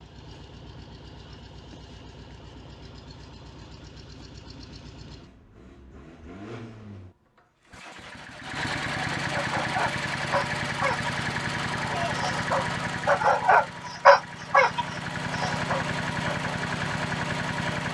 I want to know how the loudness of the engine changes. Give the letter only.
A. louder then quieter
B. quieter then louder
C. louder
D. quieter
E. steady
C.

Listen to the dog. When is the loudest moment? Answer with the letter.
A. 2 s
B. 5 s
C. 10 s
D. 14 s
D.